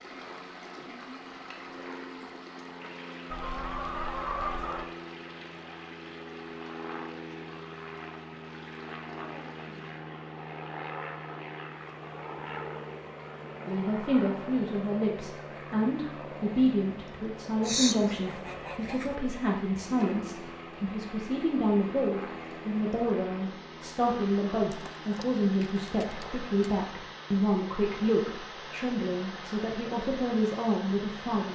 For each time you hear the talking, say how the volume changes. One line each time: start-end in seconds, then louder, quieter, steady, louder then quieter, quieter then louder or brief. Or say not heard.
13.7-31.5 steady.